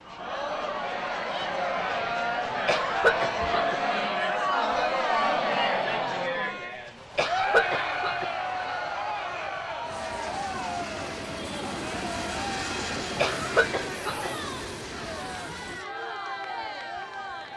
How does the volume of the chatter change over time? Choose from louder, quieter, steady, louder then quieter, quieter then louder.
quieter.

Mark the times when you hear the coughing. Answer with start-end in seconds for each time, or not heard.
2.6-3.8, 7.2-8.3, 13.2-14.3.